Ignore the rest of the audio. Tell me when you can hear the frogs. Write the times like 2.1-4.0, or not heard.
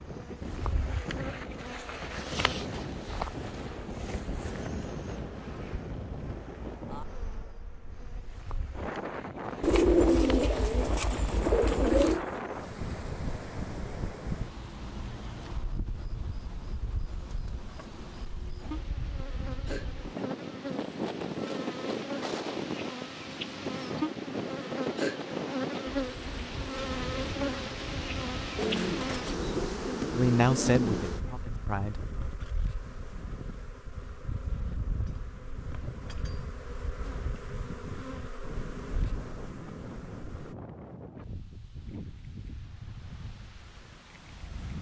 not heard.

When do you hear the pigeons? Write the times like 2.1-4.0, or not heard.
9.6-12.2, 28.6-31.1.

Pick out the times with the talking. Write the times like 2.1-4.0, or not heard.
30.1-32.0.